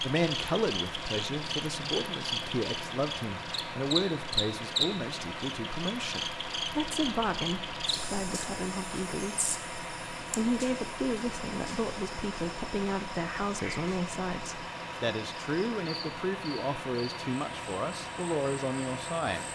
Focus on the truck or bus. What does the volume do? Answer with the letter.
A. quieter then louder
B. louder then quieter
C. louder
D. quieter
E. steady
E.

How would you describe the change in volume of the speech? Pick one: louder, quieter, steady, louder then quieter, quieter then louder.
steady.